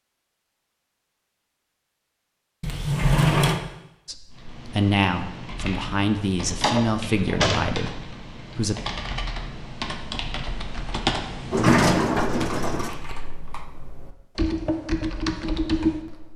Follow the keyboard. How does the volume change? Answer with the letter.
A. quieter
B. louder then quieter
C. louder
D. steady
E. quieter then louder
C.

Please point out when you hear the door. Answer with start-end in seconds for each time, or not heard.
2.6-3.6, 6.5-7.7, 11.5-12.9.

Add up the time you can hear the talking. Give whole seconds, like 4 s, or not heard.
5 s.